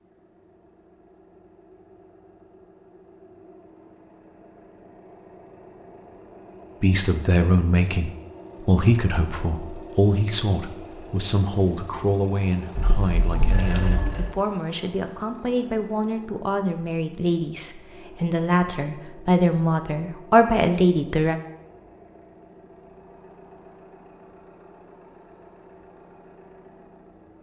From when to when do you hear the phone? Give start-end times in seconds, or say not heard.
12.8-14.3.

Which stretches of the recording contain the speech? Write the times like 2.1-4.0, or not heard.
6.8-21.4.